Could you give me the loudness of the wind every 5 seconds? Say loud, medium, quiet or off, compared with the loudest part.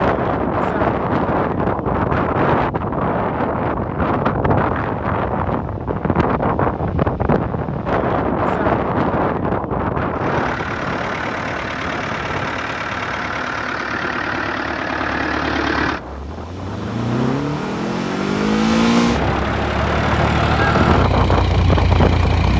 loud, loud, medium, medium, loud.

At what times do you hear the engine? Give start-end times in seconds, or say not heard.
10.1-22.5.